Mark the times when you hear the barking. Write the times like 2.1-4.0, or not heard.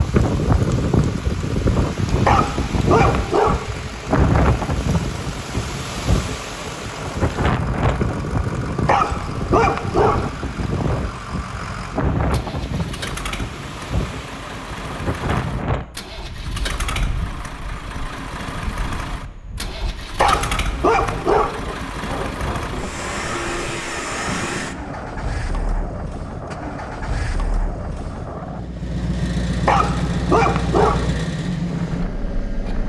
2.2-3.7, 8.8-10.3, 20.1-21.6, 29.6-31.1.